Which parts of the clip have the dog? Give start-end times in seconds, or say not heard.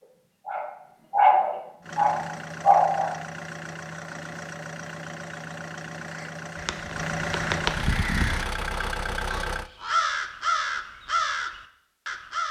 0.0-3.1.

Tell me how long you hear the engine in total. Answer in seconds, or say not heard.
8 s.